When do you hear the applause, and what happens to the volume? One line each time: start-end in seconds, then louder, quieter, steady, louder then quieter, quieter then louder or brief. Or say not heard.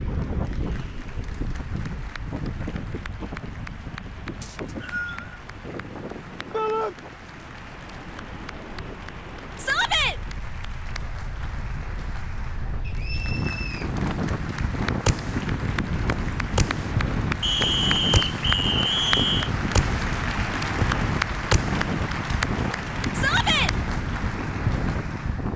0.1-25.5 louder.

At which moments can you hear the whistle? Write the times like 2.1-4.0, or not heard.
4.4-5.2, 12.8-13.9, 17.4-19.5.